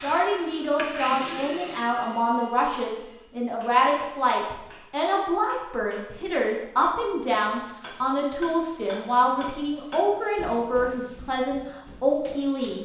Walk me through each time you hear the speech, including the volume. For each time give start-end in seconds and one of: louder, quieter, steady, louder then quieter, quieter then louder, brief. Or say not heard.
0.0-12.8 steady.